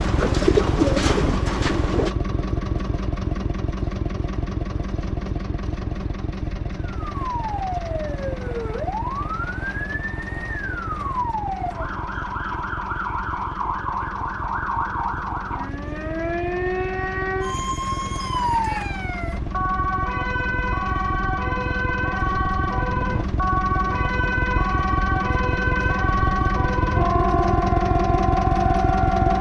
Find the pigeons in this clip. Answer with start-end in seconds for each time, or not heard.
0.0-2.1.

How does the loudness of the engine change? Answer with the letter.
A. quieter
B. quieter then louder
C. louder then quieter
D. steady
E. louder
B.